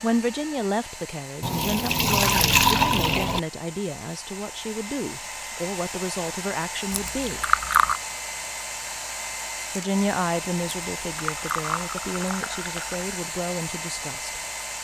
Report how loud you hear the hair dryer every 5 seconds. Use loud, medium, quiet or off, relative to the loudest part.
medium, loud, loud.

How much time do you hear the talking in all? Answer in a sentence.
The talking can be heard for 12 seconds in total.